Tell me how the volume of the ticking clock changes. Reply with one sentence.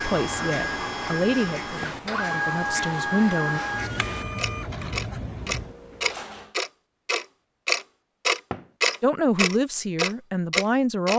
The loudness of the ticking clock goes up.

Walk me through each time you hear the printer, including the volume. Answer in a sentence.
You can hear the printer from 0.0 to 6.5 s, getting quieter.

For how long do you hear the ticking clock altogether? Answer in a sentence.
The ticking clock can be heard for 11 seconds in total.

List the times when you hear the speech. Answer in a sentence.
The speech can be heard from 0.0 to 3.6 s and from 9.0 to 11.1 s.